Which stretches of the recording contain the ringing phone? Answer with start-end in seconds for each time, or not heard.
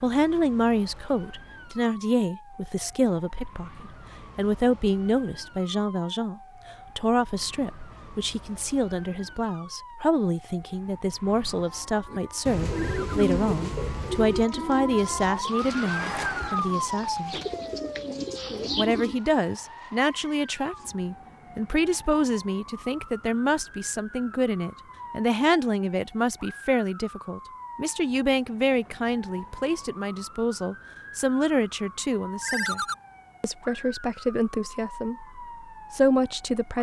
12.7-13.2, 32.4-33.0.